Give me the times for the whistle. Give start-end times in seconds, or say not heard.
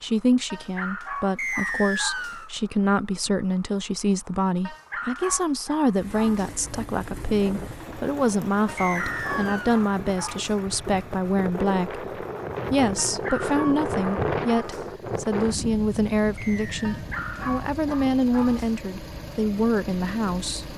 1.4-2.5, 8.8-9.8, 16.4-16.9.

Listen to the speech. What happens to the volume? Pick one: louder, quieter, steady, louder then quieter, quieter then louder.
steady.